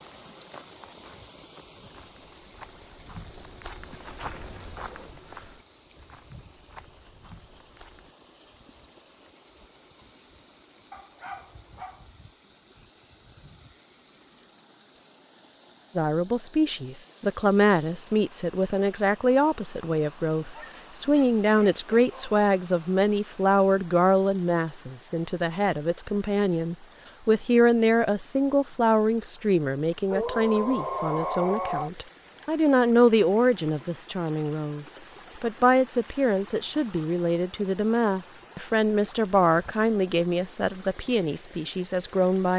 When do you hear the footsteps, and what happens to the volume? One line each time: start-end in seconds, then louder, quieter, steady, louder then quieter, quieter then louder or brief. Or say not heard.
0.0-8.2 louder then quieter.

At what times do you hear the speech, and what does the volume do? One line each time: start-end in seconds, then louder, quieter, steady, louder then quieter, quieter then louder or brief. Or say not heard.
15.9-42.5 steady.